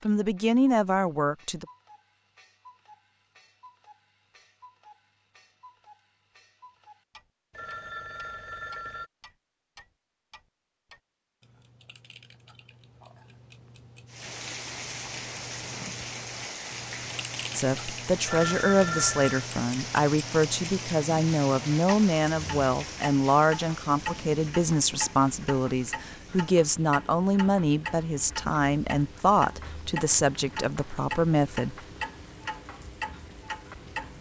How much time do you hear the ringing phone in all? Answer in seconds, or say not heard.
3 s.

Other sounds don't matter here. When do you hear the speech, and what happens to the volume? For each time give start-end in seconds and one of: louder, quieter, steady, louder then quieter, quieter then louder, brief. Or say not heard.
0.0-1.6 brief
17.5-31.8 steady.